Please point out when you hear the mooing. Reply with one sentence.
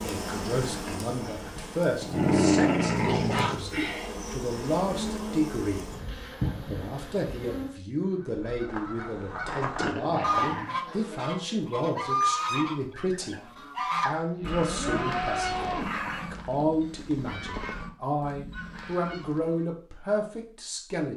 You can hear the mooing from 14.0 to 15.9 s.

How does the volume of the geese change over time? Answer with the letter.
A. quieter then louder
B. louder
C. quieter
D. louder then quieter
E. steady
C.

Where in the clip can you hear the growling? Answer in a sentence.
You can hear the growling from 1.6 to 3.5 s, from 9.8 to 10.8 s and from 14.4 to 16.4 s.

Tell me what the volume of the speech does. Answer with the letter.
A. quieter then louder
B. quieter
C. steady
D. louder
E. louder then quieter
C.